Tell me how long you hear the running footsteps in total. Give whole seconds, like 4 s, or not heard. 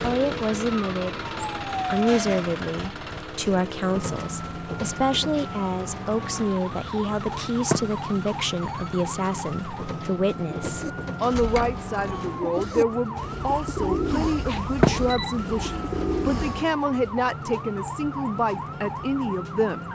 not heard.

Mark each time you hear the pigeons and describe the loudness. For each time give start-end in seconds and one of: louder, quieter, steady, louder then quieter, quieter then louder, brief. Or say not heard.
10.4-16.6 steady.